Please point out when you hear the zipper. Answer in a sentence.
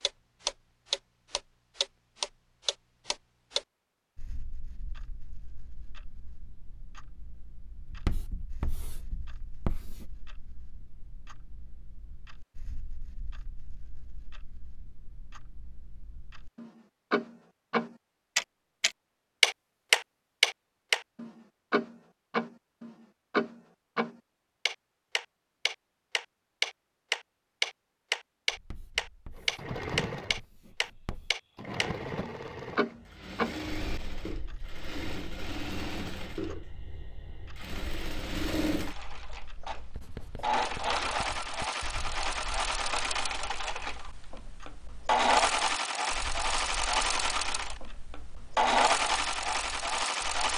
You can't hear the zipper here.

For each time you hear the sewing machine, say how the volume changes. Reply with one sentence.
The sewing machine can be heard from 29.4 to 50.5 s, getting louder.